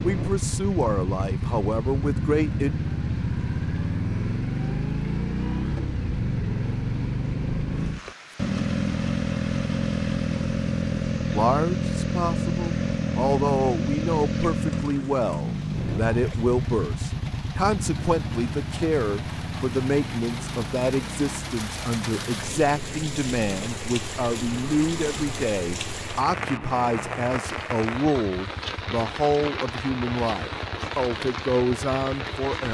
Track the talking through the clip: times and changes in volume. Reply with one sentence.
The talking can be heard briefly from 0.0 to 2.7 s; and from 11.3 to 32.6 s, at a steady volume.